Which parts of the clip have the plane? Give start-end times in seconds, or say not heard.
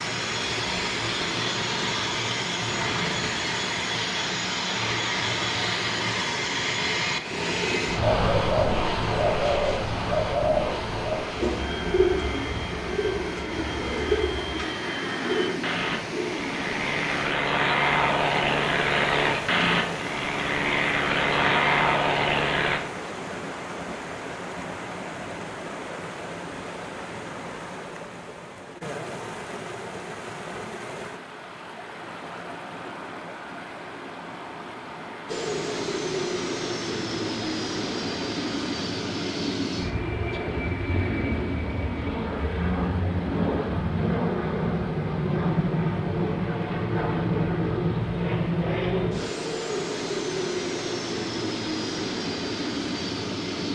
0.0-22.8, 35.2-53.7.